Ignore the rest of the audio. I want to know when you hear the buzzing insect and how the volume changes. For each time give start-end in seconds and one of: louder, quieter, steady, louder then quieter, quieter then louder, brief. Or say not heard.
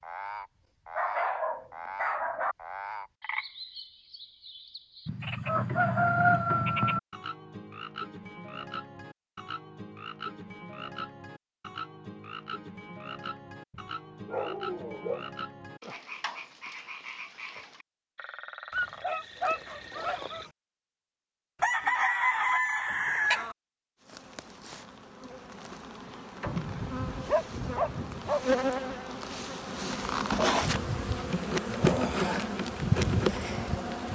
24.0-34.1 louder.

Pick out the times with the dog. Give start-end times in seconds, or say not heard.
0.9-2.5, 13.7-15.2, 18.7-20.5, 26.4-28.4.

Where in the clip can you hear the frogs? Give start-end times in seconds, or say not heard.
0.0-20.5.